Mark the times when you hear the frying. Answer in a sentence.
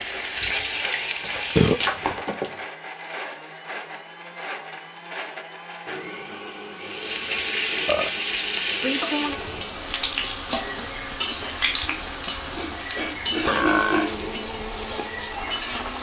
The frying can be heard from 0.0 to 1.9 s and from 6.8 to 15.9 s.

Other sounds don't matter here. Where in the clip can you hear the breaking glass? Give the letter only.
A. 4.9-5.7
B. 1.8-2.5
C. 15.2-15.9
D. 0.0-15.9
B.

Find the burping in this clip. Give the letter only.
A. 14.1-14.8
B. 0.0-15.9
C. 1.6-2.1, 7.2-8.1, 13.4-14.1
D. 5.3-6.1
C.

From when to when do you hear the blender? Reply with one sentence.
You can hear the blender from 0.0 to 15.9 s.